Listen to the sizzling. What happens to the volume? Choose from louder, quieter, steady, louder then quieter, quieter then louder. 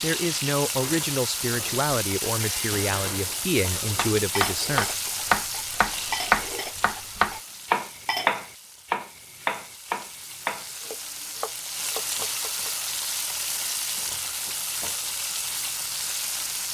quieter then louder.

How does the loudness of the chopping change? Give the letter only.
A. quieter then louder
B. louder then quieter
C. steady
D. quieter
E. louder
D.